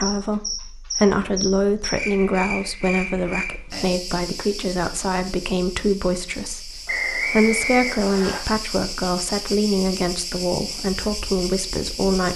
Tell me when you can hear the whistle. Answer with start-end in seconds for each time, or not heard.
6.8-8.4.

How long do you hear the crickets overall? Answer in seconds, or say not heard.
12 s.